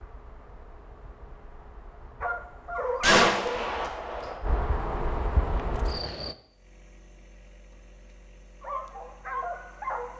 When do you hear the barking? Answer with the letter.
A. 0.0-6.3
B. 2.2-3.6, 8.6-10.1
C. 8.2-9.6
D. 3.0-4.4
B.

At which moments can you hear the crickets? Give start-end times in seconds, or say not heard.
0.0-6.3.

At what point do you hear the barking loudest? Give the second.
3 s.